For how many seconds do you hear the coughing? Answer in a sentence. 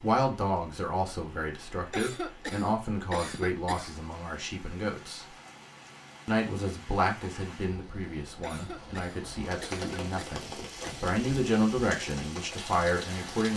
The coughing can be heard for 5 seconds in total.